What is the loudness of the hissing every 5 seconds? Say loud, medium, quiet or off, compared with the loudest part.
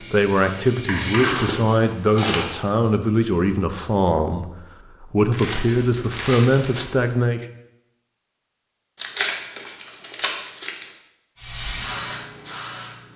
loud, off, loud.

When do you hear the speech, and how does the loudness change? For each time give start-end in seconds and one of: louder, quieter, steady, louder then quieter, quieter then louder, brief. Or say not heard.
0.0-7.5 steady.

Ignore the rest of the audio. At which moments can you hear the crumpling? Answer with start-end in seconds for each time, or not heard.
1.1-2.5, 5.3-7.0, 8.9-10.9.